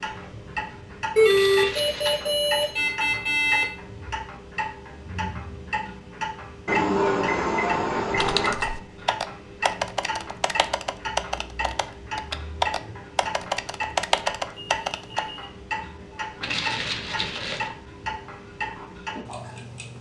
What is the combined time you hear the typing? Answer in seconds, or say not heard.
7 s.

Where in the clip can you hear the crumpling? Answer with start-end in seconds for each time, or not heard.
1.2-2.2, 16.4-17.7.